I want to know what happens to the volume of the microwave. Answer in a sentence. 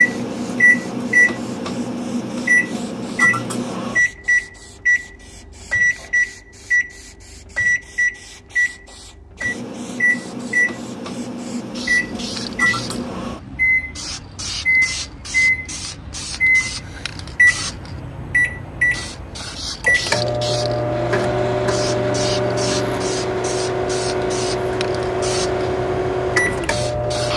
The loudness of the microwave stays about the same.